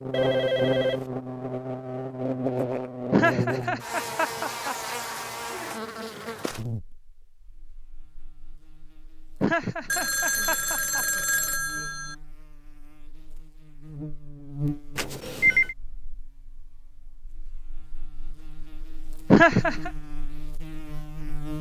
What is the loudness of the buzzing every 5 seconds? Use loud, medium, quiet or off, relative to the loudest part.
loud, medium, medium, quiet, medium.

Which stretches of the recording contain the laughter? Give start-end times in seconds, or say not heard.
3.1-4.8, 9.4-11.1, 19.3-19.9.